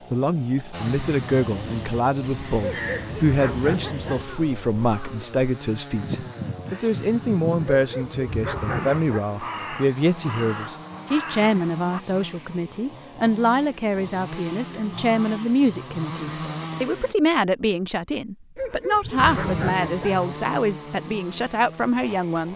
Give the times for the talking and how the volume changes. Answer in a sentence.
The talking can be heard from 0.1 to 22.5 s, at a steady volume.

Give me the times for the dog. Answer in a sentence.
The dog can be heard from 2.8 to 4.4 s, from 7.7 to 9.2 s and from 18.6 to 20.2 s.